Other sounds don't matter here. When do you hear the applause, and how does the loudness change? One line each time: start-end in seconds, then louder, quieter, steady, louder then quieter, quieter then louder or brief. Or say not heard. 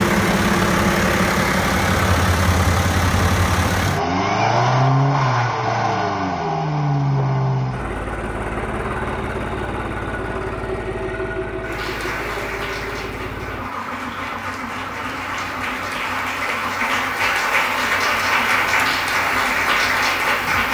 11.7-20.7 louder.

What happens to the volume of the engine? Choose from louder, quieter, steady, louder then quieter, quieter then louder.
quieter.